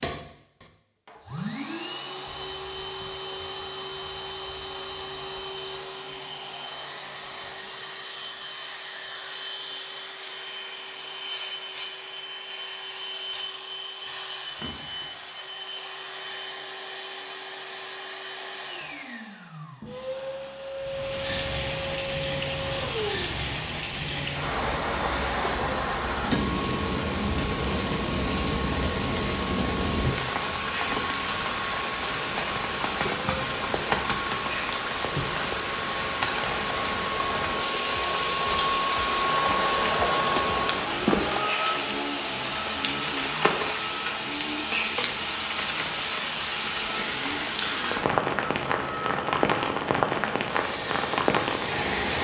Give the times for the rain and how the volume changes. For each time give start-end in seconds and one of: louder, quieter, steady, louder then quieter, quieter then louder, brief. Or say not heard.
20.8-52.1 steady.